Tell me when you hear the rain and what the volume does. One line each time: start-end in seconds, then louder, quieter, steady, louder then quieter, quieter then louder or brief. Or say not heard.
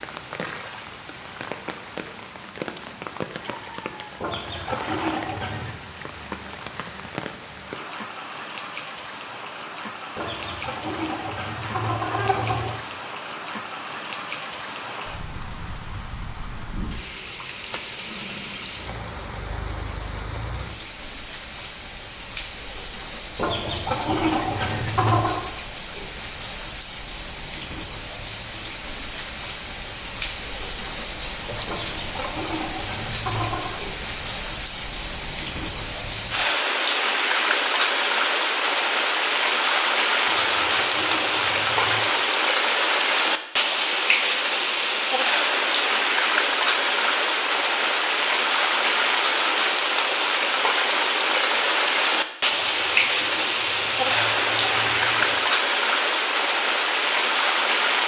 0.0-58.0 louder.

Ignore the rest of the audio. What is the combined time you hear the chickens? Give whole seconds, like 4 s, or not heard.
13 s.